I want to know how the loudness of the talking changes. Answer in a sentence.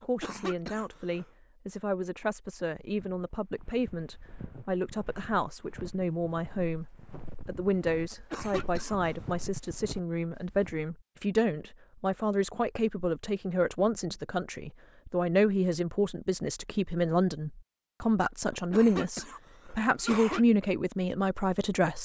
The volume of the talking goes up.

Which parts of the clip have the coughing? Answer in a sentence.
You can hear the coughing from 0.0 to 1.2 s, from 8.1 to 9.0 s and from 18.5 to 20.4 s.